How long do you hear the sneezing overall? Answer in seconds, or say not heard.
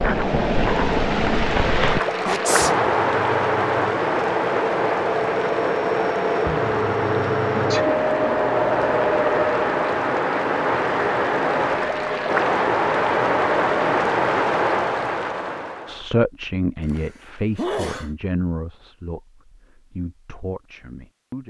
2 s.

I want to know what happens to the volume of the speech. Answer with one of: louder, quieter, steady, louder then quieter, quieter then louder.
quieter.